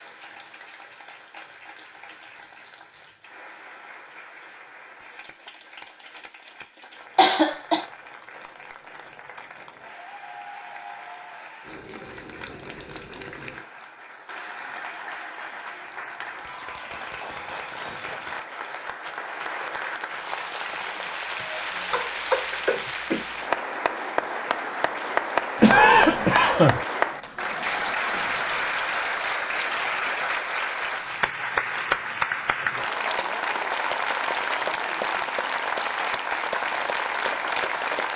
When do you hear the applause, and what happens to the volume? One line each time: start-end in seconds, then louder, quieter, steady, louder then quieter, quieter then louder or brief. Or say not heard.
0.0-38.1 louder.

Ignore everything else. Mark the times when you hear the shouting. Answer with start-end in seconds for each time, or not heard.
not heard.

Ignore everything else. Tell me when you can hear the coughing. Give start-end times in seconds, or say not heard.
7.2-7.8, 21.4-23.3, 25.6-26.9.